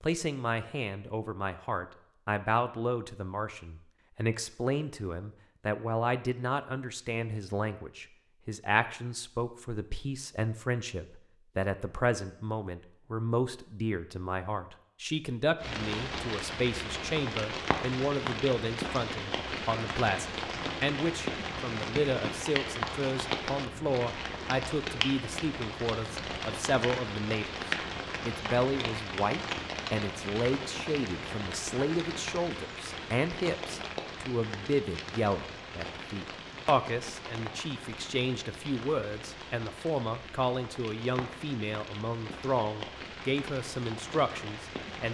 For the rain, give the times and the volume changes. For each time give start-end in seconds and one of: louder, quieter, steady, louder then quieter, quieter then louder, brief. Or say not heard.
15.6-45.0 quieter.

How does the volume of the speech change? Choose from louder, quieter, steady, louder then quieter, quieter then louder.
steady.